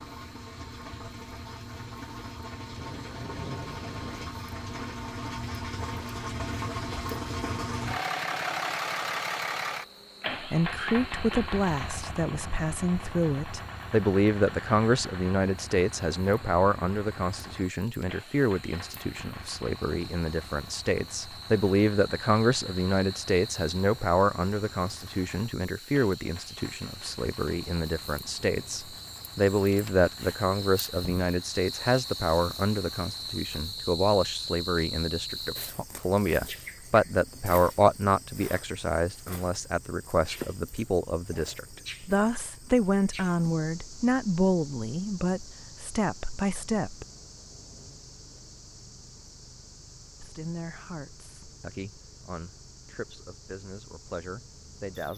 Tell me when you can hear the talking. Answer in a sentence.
The talking can be heard from 10.4 to 47.0 s and from 50.2 to 55.1 s.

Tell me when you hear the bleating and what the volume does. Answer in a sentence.
The bleating can't be heard in this clip.